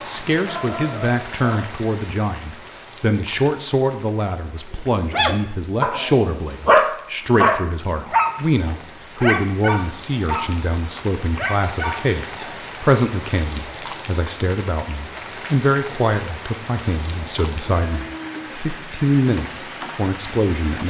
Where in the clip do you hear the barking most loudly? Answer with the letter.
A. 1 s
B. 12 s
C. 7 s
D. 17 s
C.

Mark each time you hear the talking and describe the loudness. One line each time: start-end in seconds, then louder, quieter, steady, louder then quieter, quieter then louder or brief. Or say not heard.
0.0-20.8 steady.